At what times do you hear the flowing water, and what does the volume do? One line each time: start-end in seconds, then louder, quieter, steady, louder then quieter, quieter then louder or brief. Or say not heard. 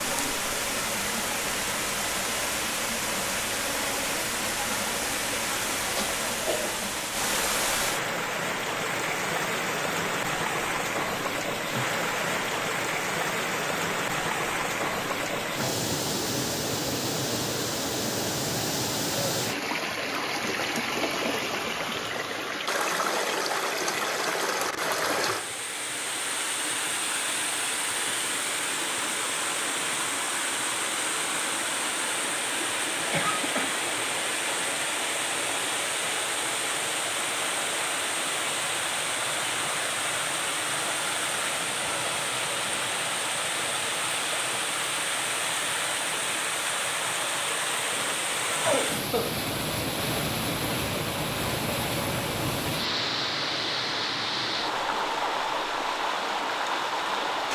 0.0-57.5 steady.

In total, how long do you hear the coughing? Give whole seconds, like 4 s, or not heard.
3 s.